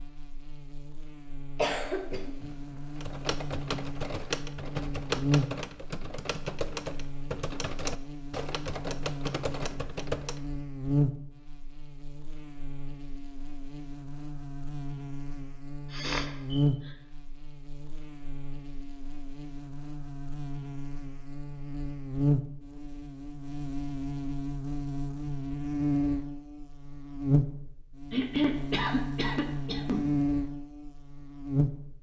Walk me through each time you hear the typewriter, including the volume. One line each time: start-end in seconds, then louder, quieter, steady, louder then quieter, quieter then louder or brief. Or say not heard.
3.0-10.5 steady.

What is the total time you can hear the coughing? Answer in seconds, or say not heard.
4 s.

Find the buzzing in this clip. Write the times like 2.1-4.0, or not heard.
0.0-31.9.